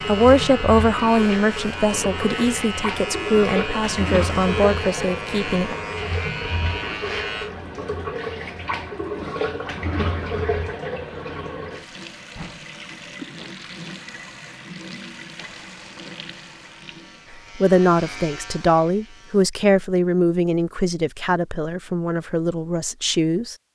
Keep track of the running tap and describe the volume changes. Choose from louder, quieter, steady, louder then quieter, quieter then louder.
quieter.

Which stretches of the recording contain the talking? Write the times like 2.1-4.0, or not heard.
0.1-5.8, 17.6-23.6.